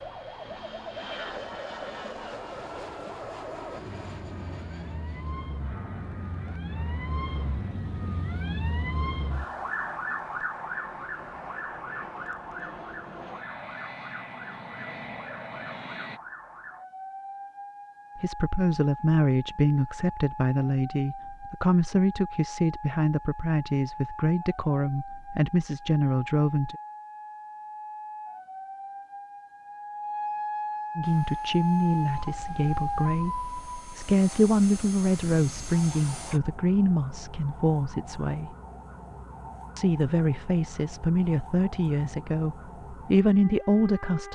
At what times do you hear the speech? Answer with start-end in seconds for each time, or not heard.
18.1-26.8, 30.9-38.5, 39.8-44.3.